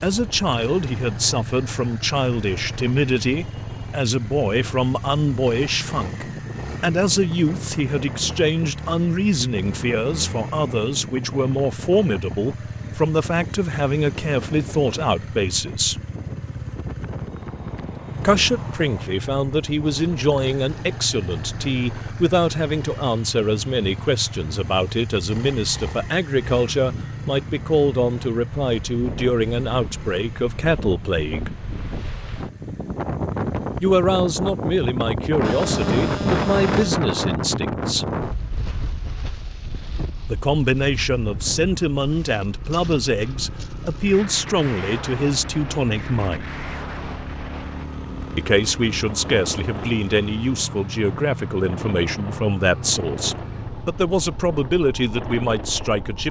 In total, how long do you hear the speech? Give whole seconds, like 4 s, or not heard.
48 s.